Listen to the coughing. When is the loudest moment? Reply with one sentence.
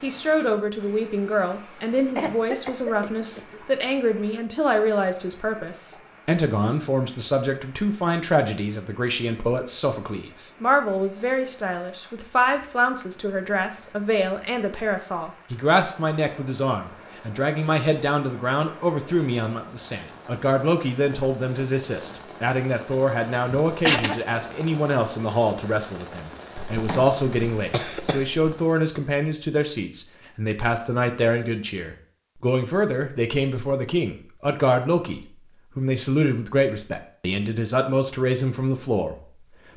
The volume of the coughing peaks at 24 seconds.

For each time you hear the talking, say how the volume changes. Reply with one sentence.
You can hear the talking from 0.0 to 39.7 s, at a steady volume.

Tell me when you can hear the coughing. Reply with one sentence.
The coughing can be heard from 1.9 to 3.8 s, from 23.7 to 24.2 s and from 26.6 to 28.6 s.